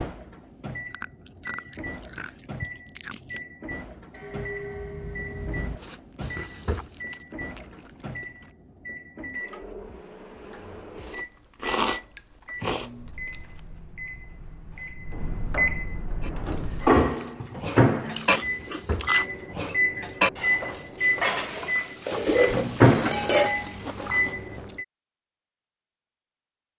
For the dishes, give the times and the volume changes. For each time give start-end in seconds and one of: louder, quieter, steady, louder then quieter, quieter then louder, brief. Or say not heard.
4.1-6.9 brief
16.2-24.2 louder.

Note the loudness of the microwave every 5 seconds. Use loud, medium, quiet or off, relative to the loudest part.
quiet, quiet, quiet, loud, loud, off.